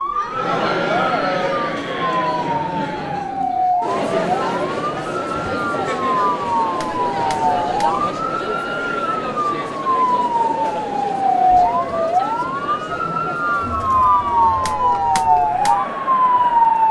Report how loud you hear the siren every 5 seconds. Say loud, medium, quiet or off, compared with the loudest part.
medium, medium, loud, loud.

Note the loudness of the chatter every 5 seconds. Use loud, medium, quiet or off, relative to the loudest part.
loud, loud, medium, medium.